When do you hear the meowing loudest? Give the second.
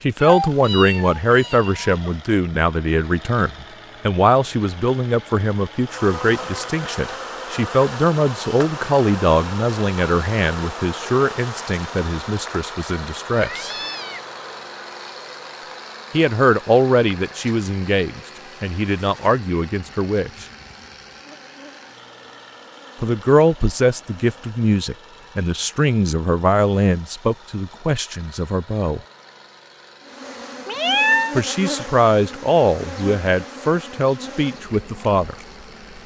31 s.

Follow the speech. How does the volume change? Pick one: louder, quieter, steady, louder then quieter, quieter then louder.
steady.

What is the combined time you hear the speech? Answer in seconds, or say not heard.
28 s.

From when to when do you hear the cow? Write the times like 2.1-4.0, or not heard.
not heard.